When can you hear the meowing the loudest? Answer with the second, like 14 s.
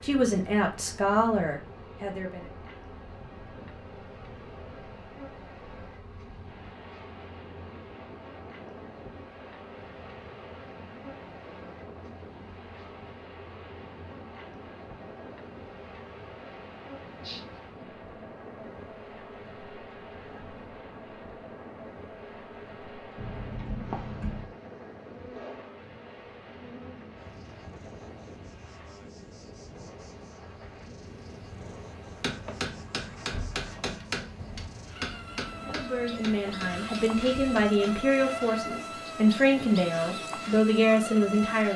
24 s.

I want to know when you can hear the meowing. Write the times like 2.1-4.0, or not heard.
17.2-17.9, 23.1-24.5.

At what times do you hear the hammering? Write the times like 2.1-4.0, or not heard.
32.0-38.0.